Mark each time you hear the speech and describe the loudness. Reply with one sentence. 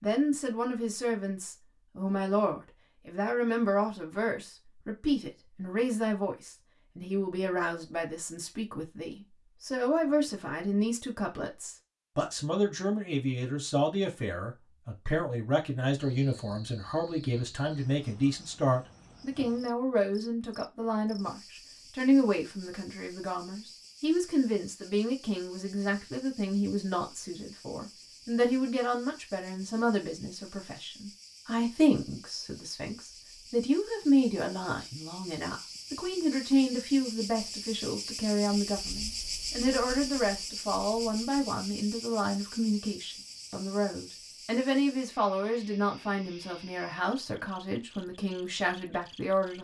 The speech can be heard from 0.0 to 49.5 s, at a steady volume.